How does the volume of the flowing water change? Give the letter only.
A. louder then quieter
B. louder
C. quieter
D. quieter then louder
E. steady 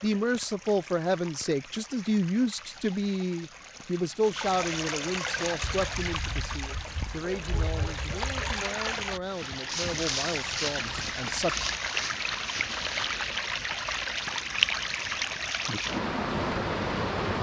B.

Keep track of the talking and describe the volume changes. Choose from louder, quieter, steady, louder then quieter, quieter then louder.
quieter.